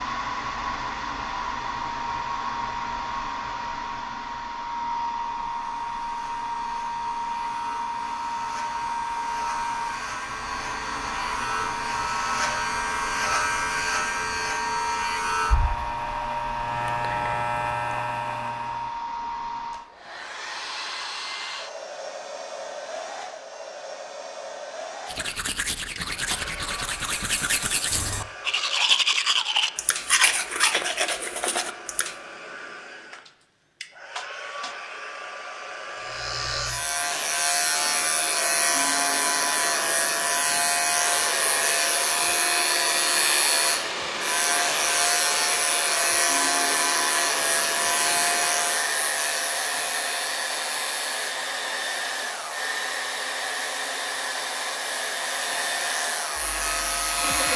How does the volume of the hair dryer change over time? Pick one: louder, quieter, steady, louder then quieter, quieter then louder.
quieter then louder.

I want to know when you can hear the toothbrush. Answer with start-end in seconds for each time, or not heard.
25.1-32.1.